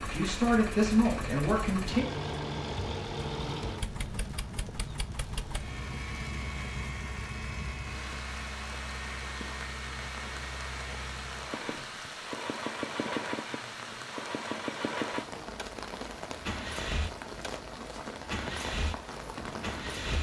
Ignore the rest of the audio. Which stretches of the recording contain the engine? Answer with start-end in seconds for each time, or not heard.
0.0-20.1.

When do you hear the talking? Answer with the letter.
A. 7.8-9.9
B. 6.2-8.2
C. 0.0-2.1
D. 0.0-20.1
C.